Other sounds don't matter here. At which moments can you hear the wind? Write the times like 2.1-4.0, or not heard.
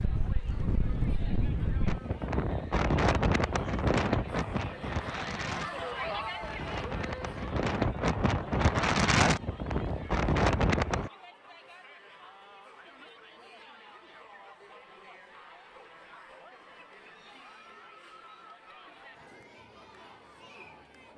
0.0-11.1.